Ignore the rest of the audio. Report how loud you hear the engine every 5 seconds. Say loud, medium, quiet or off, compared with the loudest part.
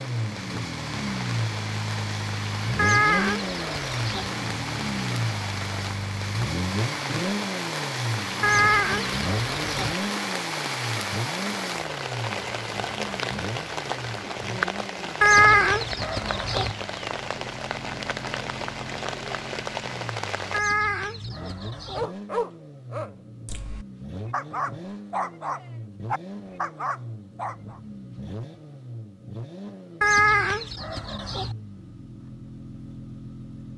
loud, loud, medium, medium, medium, medium, medium.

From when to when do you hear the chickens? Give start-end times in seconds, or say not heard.
2.8-4.3, 8.4-9.9, 15.2-16.8, 20.5-22.1, 30.0-31.6.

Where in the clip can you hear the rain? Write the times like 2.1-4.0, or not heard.
0.0-20.6.